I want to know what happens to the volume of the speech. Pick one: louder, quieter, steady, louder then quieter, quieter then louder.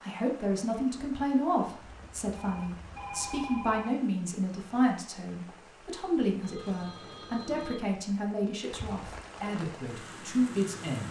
steady.